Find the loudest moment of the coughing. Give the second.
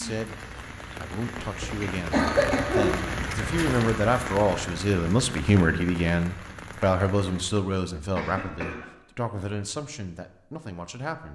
2 s.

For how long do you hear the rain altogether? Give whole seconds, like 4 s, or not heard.
8 s.